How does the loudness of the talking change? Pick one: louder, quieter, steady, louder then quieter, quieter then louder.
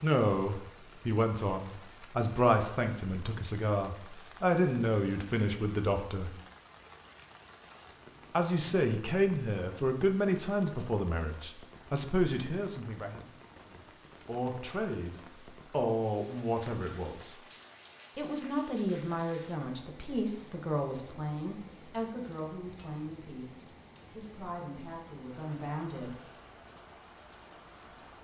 quieter.